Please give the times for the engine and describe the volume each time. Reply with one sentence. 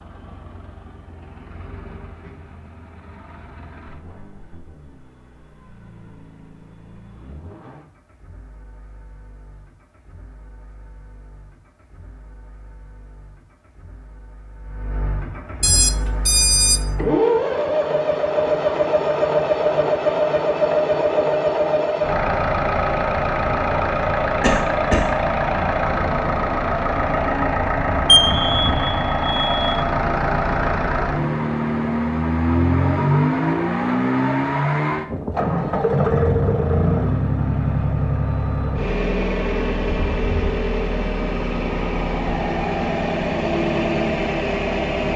You can hear the engine from 0.0 to 45.1 s, getting louder.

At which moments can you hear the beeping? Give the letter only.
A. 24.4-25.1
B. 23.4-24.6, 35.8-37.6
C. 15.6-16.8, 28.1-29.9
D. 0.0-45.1
C.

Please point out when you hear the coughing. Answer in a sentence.
The coughing can be heard from 24.4 to 25.1 s.